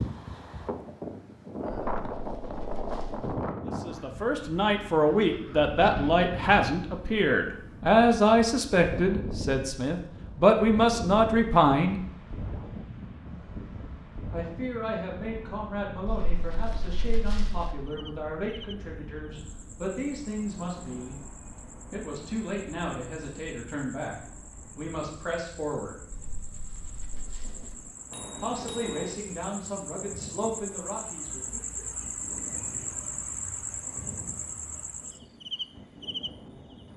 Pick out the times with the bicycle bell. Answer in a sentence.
The bicycle bell can be heard from 28.1 to 29.1 s.